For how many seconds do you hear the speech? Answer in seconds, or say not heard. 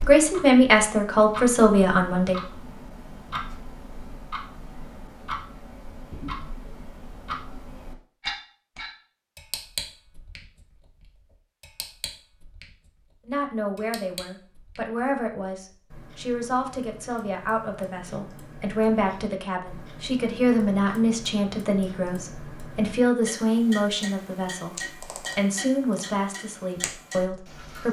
17 s.